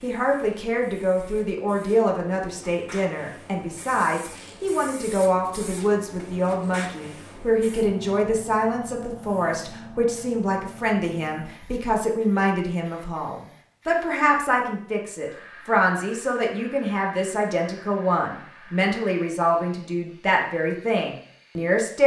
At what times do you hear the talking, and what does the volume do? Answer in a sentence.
You can hear the talking from 0.0 to 22.0 s, at a steady volume.